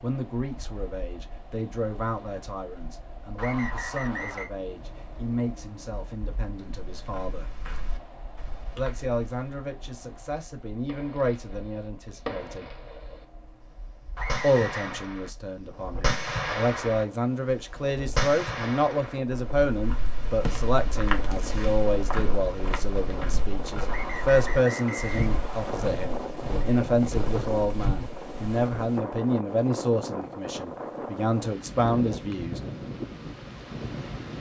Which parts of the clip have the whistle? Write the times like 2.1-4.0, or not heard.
3.4-4.5, 14.2-15.0, 23.9-25.9.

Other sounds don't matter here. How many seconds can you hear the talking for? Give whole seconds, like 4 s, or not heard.
30 s.